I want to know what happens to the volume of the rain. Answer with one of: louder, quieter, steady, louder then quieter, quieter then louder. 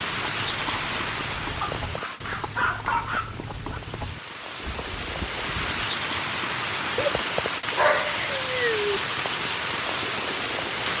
quieter then louder.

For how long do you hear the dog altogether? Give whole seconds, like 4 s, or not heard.
4 s.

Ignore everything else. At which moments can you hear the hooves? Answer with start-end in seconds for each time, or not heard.
0.2-5.7.